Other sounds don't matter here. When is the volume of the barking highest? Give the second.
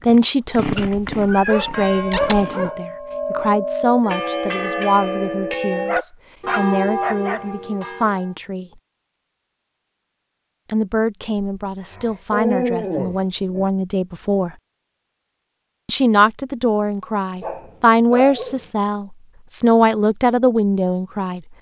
13 s.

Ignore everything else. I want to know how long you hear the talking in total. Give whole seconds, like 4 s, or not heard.
18 s.